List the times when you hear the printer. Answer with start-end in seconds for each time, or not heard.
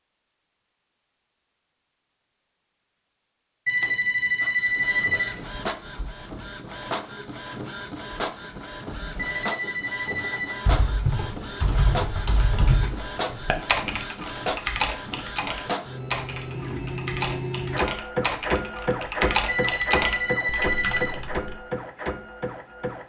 4.4-23.0.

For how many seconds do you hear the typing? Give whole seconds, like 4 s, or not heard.
11 s.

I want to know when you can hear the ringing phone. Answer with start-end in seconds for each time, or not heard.
3.6-5.4, 9.2-10.6, 19.4-21.2.